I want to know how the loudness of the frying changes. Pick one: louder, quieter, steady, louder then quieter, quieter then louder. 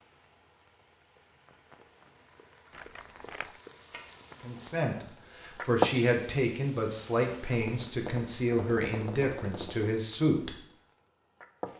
louder then quieter.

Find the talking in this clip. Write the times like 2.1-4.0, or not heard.
4.4-10.6.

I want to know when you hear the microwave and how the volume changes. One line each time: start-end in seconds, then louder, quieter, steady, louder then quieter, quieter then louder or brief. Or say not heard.
not heard.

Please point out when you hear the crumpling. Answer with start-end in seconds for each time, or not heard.
2.7-3.6.